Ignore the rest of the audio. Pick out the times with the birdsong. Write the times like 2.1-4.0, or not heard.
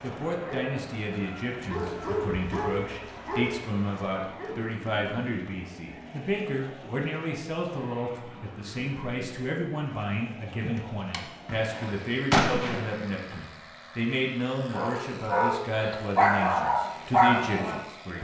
not heard.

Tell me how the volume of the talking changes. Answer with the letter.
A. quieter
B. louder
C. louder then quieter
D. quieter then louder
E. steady
E.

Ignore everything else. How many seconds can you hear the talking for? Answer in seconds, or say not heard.
18 s.